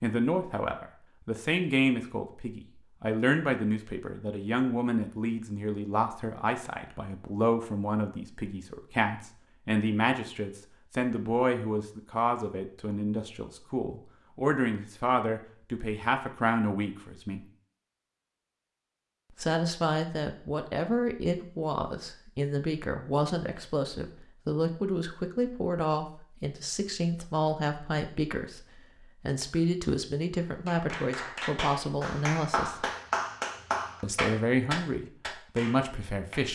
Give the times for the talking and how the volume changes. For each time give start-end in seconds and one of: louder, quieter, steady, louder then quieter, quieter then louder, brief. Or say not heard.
0.0-17.4 steady
19.4-32.9 steady
34.0-36.5 brief.